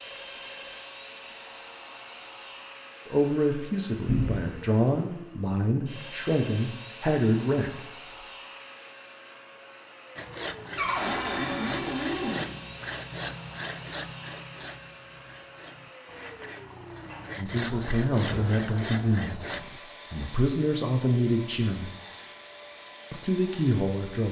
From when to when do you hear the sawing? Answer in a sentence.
The sawing can be heard from 10.2 to 19.8 s.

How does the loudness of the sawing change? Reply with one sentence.
The loudness of the sawing goes down, then up.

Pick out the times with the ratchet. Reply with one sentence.
You can't hear the ratchet here.